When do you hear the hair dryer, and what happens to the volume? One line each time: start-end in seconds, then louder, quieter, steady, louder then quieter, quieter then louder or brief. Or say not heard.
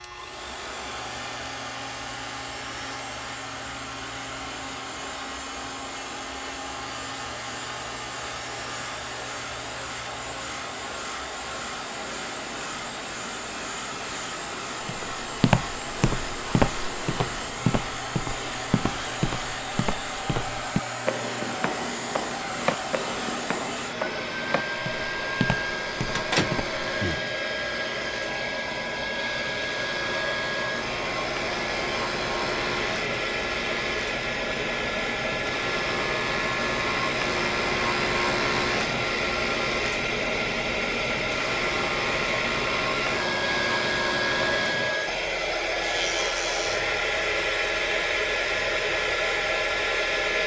0.0-50.4 louder.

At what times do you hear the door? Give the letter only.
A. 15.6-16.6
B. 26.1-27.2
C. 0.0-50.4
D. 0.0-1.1
B.